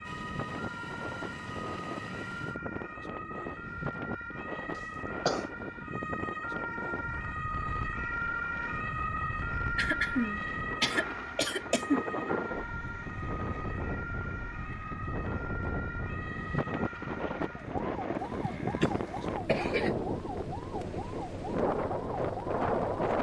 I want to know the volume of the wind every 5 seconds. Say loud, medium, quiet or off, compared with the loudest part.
medium, medium, medium, loud, loud.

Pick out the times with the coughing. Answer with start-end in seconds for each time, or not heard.
4.8-5.5, 9.8-12.1, 18.2-19.9.